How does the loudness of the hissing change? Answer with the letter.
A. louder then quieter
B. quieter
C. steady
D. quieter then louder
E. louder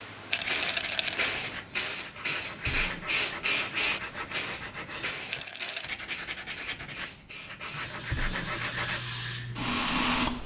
D.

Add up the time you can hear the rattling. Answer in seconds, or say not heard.
2 s.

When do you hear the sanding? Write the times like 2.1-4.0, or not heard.
0.4-9.0.